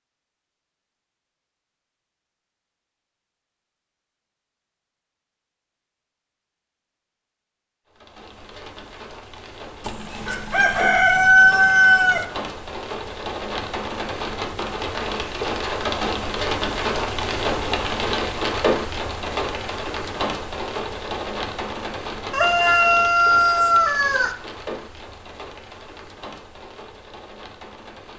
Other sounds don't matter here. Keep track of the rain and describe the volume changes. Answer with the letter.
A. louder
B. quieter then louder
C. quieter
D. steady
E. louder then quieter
E.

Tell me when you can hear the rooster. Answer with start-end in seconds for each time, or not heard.
9.8-12.2, 22.3-24.3.